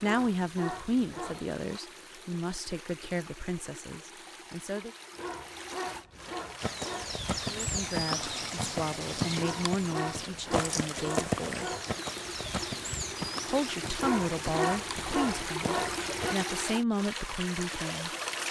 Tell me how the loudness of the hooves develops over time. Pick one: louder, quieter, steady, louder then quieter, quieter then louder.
quieter.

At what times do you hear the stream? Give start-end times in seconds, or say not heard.
0.0-18.4.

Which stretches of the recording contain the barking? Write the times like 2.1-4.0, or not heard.
0.0-1.6, 5.2-7.2, 9.3-11.9, 14.0-16.4.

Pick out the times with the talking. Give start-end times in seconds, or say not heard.
0.0-4.9, 7.5-11.7, 13.4-18.1.